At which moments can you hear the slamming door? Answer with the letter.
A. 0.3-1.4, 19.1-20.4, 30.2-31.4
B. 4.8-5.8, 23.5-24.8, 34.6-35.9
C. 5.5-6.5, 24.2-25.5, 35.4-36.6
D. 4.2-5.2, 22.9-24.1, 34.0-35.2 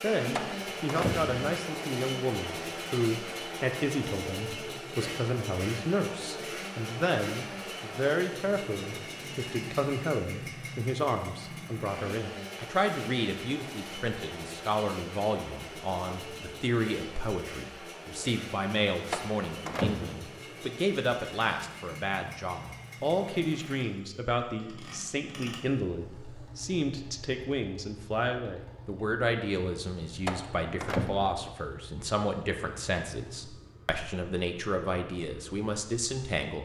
A.